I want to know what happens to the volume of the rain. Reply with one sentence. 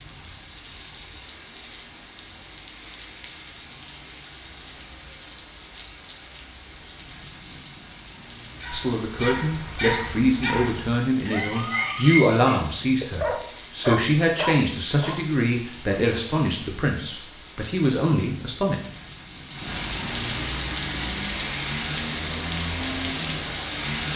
The volume of the rain goes up.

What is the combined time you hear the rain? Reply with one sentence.
You can hear the rain for 24 seconds altogether.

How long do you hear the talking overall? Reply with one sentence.
You can hear the talking for 10 seconds altogether.